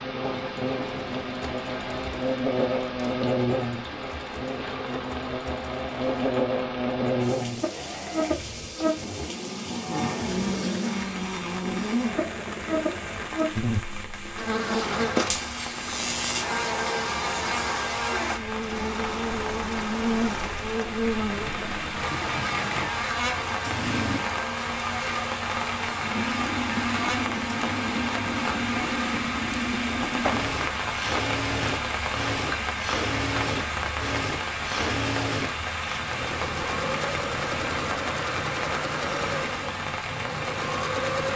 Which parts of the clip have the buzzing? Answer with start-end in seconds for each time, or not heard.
0.0-29.2.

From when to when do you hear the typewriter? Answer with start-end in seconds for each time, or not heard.
not heard.